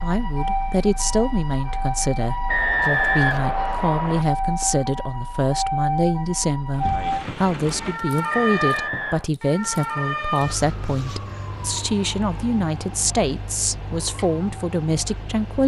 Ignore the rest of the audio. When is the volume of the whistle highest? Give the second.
3 s.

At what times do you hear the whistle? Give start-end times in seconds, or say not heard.
2.5-4.2, 8.3-9.3.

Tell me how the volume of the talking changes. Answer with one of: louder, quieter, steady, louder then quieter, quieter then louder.
steady.